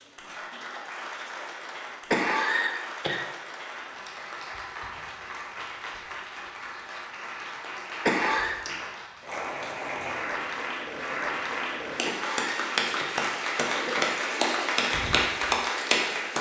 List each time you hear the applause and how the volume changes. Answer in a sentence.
You can hear the applause from 0.0 to 16.3 s, getting louder.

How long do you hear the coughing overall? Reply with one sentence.
The coughing can be heard for 4 seconds in total.